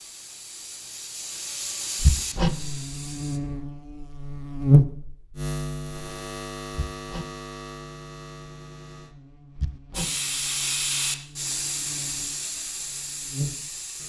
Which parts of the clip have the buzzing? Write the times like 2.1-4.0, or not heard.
2.4-14.0.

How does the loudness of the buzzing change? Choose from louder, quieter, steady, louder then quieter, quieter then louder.
quieter then louder.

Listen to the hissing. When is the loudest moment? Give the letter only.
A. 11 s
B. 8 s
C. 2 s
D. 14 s
A.